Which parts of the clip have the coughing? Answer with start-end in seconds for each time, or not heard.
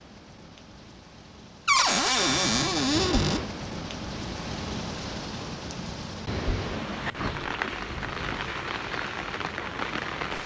not heard.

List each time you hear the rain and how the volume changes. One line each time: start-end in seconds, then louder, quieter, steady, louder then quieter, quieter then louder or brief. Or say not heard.
0.0-10.4 louder.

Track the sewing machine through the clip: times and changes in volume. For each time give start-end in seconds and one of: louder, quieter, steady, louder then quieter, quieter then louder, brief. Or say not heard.
not heard.